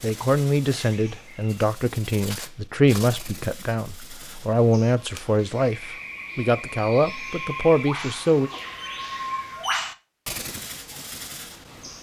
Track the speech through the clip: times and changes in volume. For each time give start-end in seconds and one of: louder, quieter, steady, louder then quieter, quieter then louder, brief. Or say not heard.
0.0-8.5 steady.